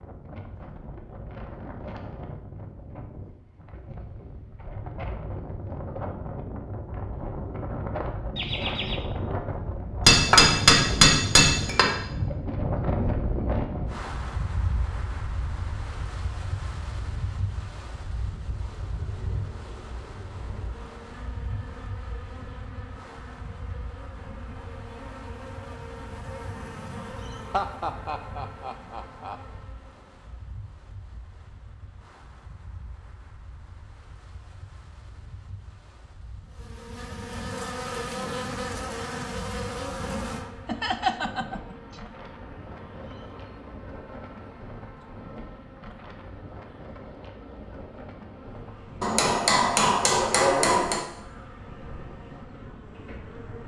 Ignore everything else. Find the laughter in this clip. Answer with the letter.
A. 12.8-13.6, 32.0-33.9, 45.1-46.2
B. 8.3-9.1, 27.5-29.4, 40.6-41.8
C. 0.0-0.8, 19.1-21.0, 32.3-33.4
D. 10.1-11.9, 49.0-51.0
B.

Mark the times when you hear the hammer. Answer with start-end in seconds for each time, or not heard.
10.1-11.9, 49.0-51.0.